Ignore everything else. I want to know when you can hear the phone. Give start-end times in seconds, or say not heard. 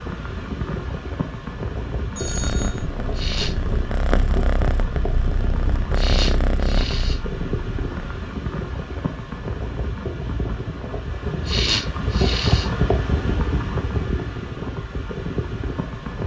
2.1-2.9.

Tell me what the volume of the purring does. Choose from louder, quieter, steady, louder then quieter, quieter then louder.
louder.